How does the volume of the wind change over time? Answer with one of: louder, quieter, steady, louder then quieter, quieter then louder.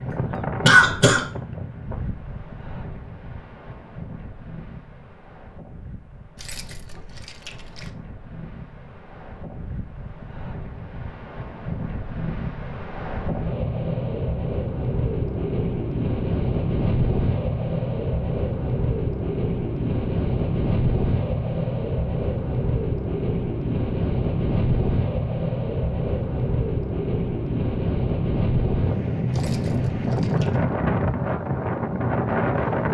louder.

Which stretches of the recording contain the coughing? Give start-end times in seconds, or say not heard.
0.1-1.2.